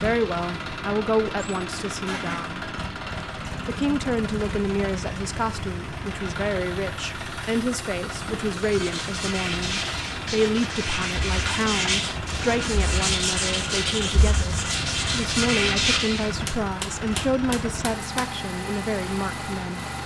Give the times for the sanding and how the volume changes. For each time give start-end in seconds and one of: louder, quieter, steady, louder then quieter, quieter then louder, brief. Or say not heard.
8.6-16.4 louder.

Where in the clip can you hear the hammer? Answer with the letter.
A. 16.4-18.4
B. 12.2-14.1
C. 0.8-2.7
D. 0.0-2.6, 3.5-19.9
A.